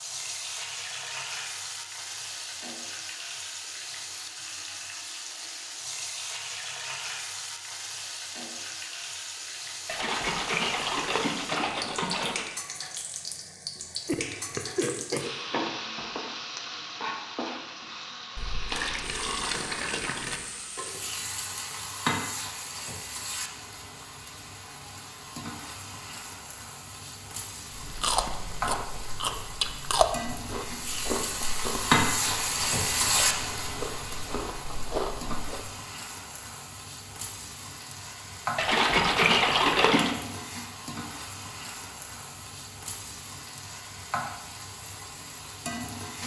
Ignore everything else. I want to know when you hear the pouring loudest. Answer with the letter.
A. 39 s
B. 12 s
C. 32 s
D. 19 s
A.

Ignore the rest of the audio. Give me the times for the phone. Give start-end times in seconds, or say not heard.
not heard.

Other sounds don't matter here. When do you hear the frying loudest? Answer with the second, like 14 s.
32 s.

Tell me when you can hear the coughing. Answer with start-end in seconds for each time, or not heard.
14.1-15.8.